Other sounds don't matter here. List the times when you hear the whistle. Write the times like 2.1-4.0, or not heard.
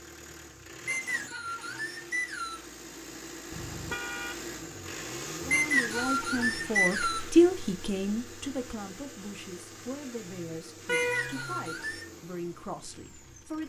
0.8-2.6, 5.5-7.3, 10.9-12.1.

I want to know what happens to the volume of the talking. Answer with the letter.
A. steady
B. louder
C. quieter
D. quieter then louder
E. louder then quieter
E.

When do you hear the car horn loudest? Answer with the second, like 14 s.
11 s.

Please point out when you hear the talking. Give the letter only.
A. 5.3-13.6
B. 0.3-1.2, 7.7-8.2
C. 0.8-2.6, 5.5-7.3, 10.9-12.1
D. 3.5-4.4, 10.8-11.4
A.